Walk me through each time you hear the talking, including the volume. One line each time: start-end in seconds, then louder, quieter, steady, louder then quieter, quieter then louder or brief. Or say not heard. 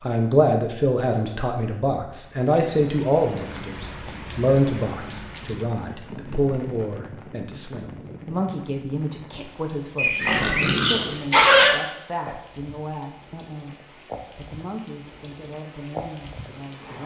0.0-17.0 quieter.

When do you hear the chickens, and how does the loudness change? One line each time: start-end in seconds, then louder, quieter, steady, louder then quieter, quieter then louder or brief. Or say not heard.
not heard.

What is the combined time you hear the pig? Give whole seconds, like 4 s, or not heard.
2 s.